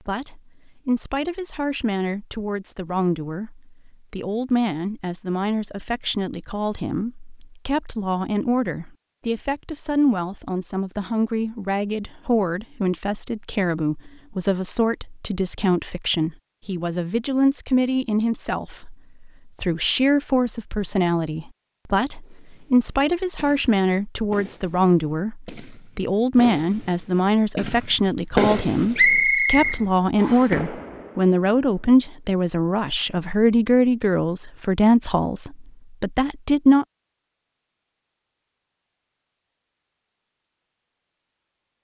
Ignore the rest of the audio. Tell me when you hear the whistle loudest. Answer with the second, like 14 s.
29 s.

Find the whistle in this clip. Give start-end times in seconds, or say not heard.
28.9-30.5.